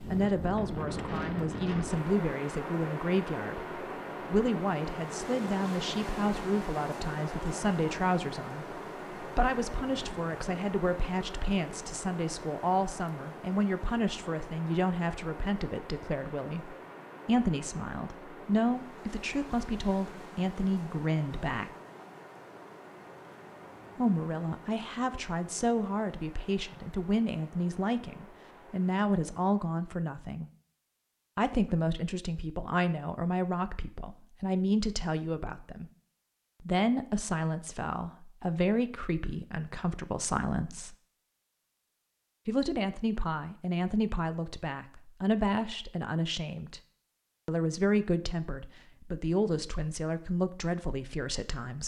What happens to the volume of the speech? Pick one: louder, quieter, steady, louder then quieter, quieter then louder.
steady.